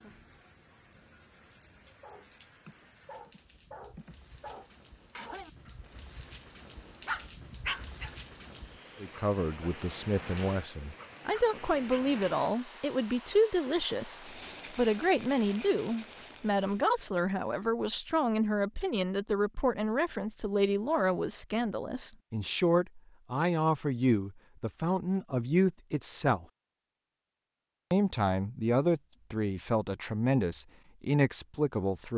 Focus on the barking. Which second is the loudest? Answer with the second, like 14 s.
8 s.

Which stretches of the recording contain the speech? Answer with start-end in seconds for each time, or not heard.
9.0-26.4, 27.9-32.1.